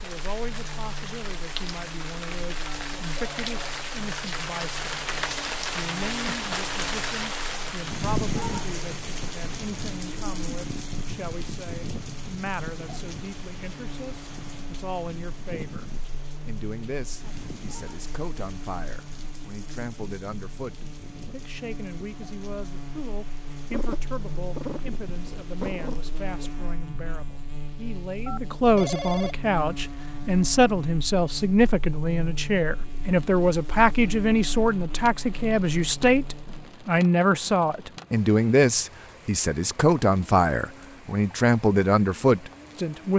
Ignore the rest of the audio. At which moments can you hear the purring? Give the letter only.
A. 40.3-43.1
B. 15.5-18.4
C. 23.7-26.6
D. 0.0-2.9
C.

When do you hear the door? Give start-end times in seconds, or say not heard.
not heard.